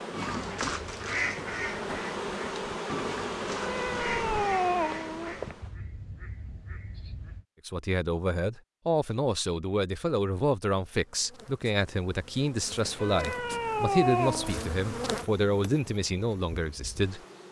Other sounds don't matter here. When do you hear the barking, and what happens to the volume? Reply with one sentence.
You can't hear the barking here.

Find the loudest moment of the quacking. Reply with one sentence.
The volume of the quacking peaks at 1 second.